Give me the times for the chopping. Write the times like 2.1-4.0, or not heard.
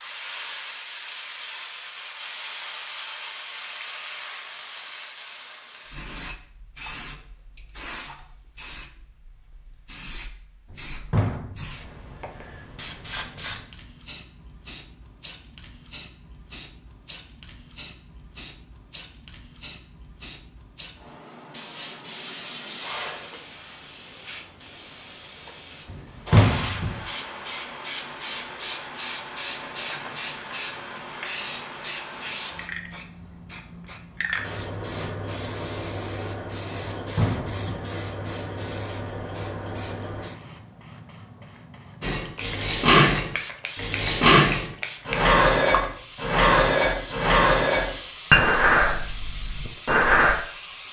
not heard.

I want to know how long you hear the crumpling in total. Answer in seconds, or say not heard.
2 s.